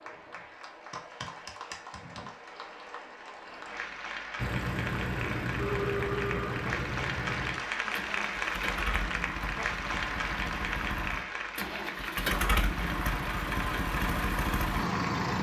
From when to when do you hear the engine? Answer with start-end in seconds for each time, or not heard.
4.3-15.3.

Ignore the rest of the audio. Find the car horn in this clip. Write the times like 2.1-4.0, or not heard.
5.5-6.7.